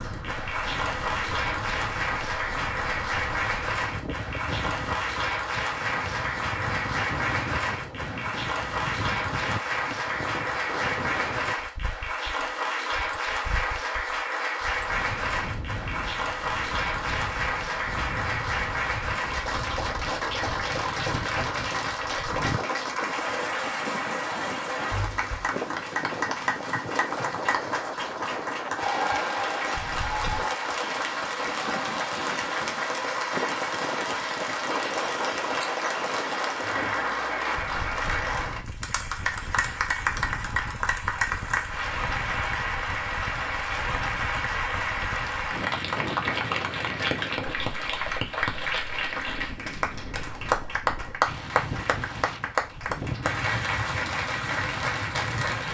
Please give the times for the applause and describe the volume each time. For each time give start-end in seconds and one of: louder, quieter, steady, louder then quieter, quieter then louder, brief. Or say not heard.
0.0-55.6 steady.